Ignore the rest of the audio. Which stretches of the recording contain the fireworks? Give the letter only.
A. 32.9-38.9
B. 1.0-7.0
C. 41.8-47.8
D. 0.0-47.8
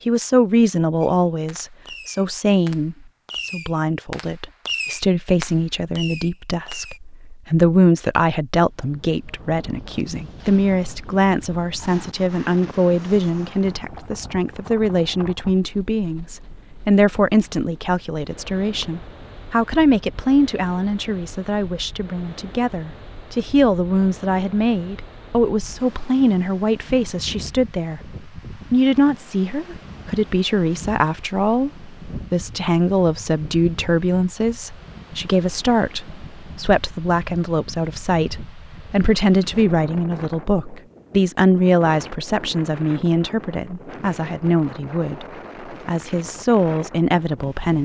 B.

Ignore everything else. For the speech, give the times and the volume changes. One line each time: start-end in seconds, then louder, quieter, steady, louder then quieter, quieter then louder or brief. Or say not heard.
0.0-47.8 steady.